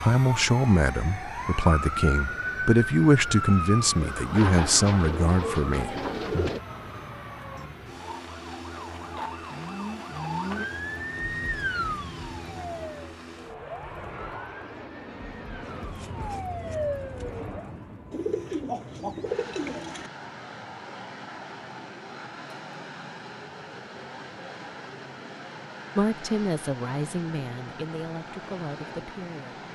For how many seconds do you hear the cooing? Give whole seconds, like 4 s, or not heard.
4 s.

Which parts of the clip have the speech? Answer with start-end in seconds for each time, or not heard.
0.0-6.5, 25.9-29.7.